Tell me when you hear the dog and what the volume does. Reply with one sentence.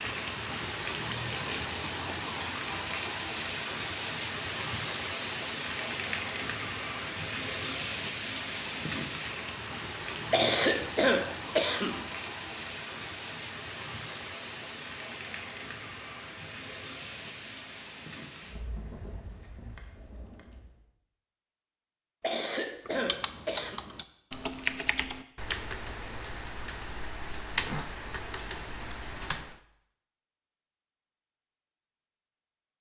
You can't hear the dog here.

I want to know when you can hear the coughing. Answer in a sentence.
You can hear the coughing from 10.3 to 12.1 s and from 22.2 to 23.8 s.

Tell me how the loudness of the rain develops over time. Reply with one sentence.
The loudness of the rain goes down.